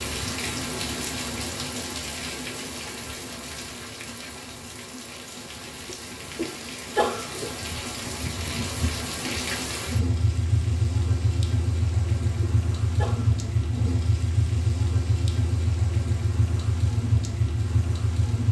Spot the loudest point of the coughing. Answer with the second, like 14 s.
7 s.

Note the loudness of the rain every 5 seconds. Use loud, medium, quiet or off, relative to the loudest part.
medium, medium, loud, loud.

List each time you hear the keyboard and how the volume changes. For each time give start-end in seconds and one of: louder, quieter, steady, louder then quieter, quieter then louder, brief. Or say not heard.
not heard.